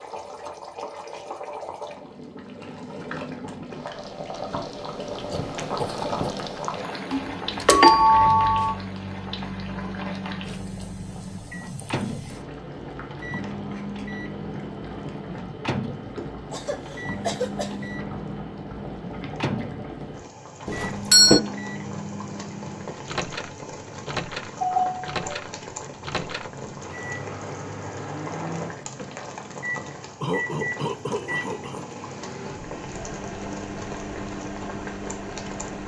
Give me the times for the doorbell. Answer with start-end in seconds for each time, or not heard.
7.1-8.8, 20.6-21.4, 24.2-25.4.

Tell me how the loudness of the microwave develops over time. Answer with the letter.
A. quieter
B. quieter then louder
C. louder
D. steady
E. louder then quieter
D.